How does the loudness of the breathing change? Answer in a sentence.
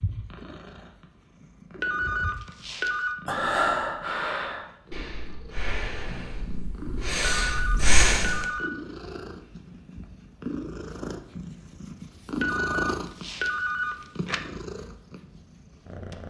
The loudness of the breathing goes down, then up.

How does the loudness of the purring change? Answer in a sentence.
The loudness of the purring goes up.